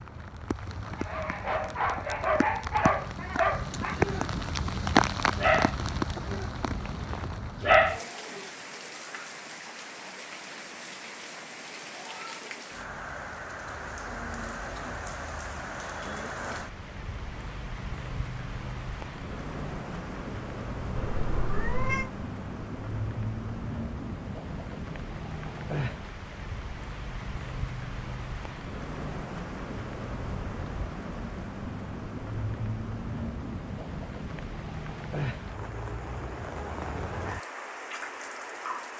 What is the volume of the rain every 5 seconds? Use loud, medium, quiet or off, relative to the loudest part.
loud, loud, medium, medium, medium, medium, medium, medium.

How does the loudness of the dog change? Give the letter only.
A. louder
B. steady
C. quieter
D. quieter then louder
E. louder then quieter
A.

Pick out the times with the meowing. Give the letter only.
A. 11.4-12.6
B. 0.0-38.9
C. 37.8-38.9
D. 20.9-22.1
D.